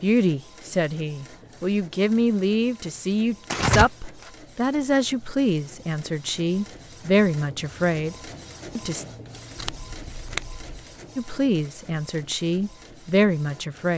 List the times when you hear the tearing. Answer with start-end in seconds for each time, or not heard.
3.5-4.3, 9.6-10.7.